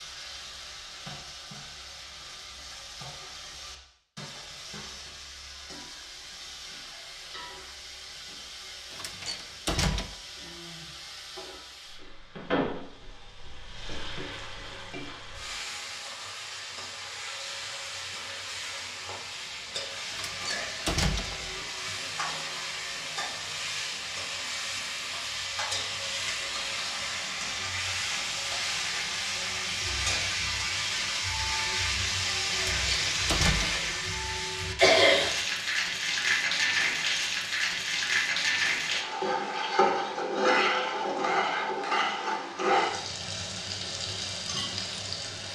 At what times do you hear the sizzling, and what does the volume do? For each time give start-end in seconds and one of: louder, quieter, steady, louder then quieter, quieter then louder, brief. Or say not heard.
0.0-45.5 louder.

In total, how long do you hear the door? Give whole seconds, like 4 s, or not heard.
4 s.